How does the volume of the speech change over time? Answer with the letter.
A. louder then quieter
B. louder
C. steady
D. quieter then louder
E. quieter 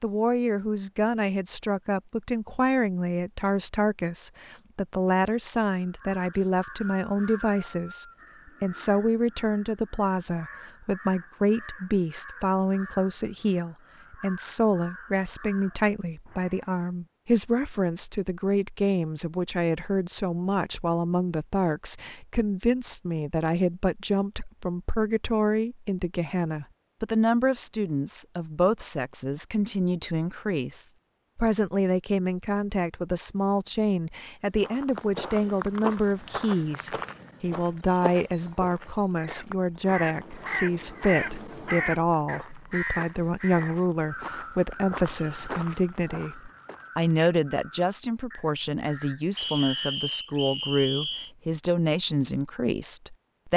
C.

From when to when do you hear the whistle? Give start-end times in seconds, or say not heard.
6.3-8.2, 49.4-51.3.